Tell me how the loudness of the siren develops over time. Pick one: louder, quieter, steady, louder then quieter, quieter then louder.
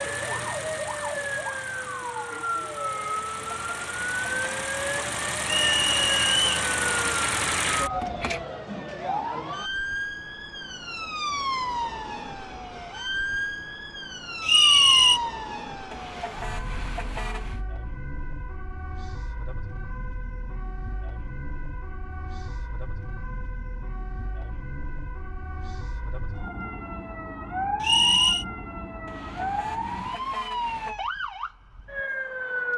quieter then louder.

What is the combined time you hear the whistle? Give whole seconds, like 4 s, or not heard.
3 s.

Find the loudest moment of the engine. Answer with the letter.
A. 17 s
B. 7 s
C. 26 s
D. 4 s
B.